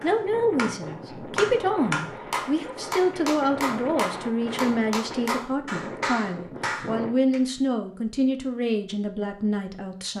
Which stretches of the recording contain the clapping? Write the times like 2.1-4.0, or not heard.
0.0-7.4.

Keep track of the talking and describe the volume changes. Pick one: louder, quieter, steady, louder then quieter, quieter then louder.
steady.